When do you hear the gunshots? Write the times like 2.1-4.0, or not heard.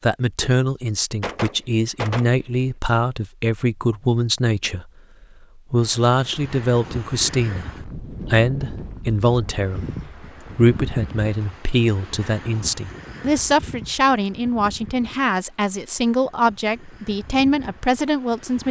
1.2-2.4.